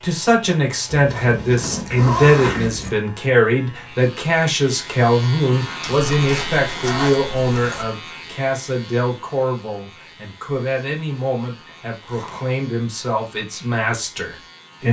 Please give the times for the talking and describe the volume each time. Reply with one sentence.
The talking can be heard from 0.0 to 14.8 s, getting quieter.